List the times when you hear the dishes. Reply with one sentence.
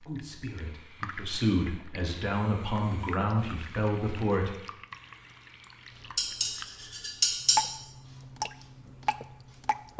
The dishes can be heard from 6.2 to 7.6 s.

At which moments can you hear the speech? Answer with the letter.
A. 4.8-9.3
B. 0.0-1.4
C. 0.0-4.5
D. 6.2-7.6
C.